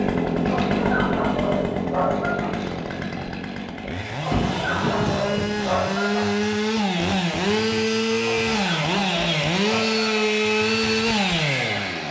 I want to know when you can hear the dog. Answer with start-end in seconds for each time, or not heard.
0.5-2.5, 4.2-6.2, 8.2-10.2.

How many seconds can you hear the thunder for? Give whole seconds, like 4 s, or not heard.
2 s.